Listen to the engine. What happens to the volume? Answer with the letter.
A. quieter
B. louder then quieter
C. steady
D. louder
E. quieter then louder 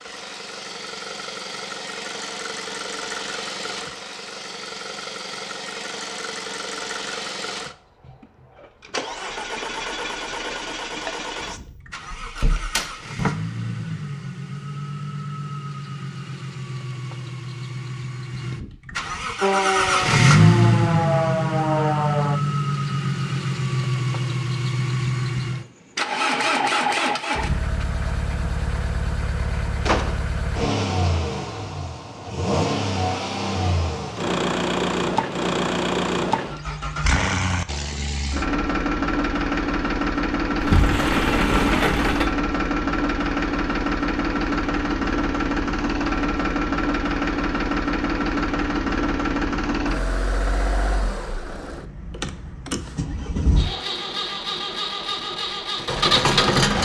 D.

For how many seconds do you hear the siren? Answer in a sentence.
The siren can be heard for 3 seconds in total.